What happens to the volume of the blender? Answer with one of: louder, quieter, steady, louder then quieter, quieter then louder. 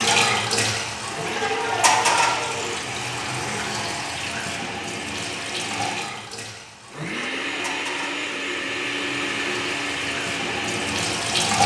louder.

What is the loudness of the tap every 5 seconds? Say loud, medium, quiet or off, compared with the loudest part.
loud, medium, loud.